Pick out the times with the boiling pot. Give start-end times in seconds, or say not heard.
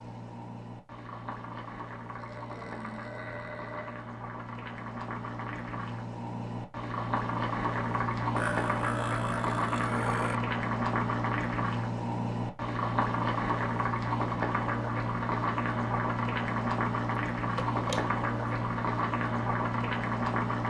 0.0-20.6.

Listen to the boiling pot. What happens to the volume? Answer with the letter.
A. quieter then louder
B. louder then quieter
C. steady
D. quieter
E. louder
E.